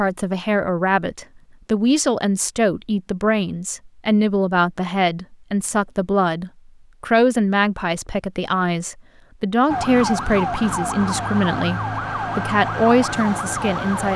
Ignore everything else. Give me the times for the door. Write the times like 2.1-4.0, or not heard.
not heard.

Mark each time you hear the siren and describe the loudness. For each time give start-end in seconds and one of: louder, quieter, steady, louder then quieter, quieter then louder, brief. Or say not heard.
9.7-14.1 steady.